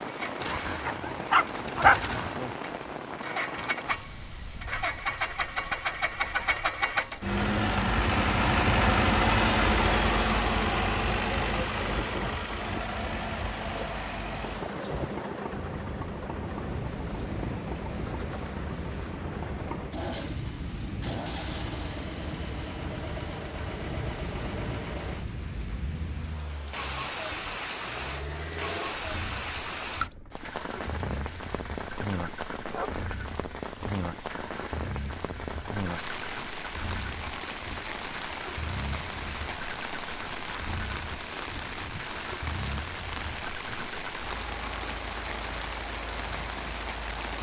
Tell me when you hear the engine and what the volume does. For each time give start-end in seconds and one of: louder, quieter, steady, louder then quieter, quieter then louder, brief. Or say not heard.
0.0-47.3 quieter.